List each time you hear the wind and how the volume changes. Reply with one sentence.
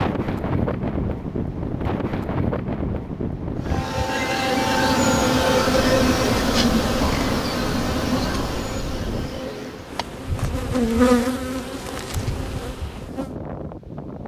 You can hear the wind from 0.0 to 14.2 s, getting quieter.